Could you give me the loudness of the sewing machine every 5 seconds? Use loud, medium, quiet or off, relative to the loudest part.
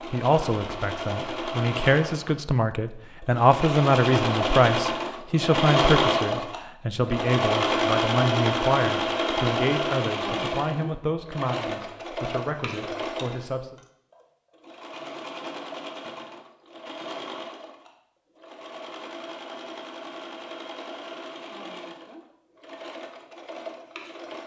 medium, loud, medium, quiet, quiet.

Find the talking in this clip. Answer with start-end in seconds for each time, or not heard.
0.1-13.8.